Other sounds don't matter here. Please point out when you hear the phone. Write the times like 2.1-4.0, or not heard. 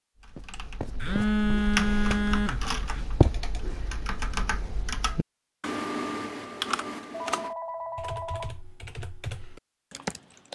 1.0-3.0, 7.1-8.6.